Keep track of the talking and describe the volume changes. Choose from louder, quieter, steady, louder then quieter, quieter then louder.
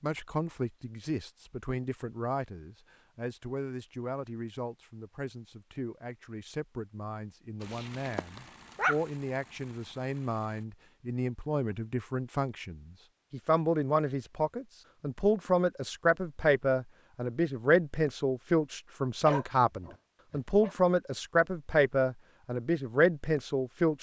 louder.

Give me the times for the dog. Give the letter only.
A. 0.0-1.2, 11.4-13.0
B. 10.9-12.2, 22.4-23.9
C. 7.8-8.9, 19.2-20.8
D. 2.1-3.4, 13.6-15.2
C.